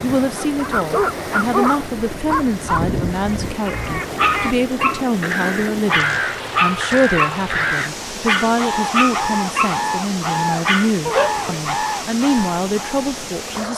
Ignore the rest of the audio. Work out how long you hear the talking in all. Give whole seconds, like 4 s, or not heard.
14 s.